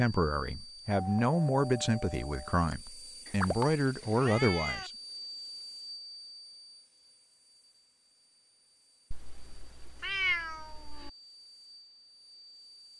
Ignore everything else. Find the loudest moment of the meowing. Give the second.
10 s.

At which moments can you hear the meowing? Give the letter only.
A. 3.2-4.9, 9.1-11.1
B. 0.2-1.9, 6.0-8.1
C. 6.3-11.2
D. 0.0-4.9
A.